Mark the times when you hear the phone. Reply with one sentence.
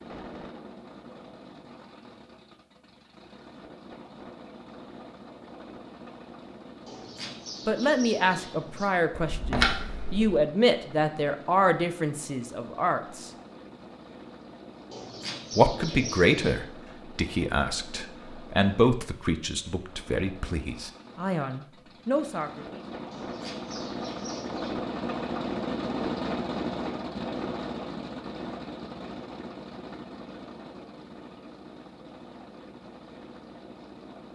You can hear the phone from 9.1 to 10.4 s.